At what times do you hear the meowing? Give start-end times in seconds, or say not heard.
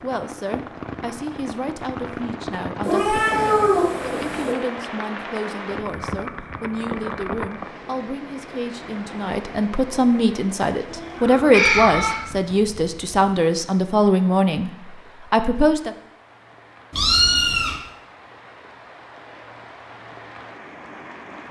2.8-4.5, 10.9-12.2, 16.9-17.8.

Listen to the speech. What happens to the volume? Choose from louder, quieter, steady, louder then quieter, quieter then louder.
louder.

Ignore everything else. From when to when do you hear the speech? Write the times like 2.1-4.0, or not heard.
0.0-15.9.